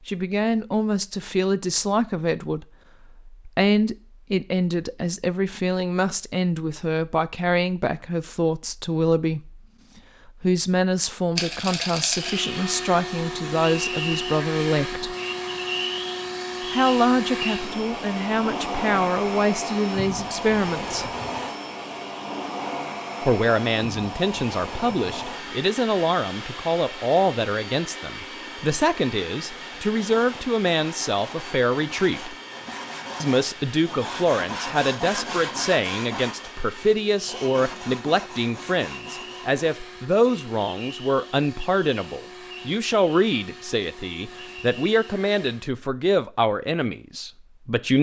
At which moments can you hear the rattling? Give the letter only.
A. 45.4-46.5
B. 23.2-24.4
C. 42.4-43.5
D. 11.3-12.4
D.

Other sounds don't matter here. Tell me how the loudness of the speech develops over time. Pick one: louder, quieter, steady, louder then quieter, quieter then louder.
steady.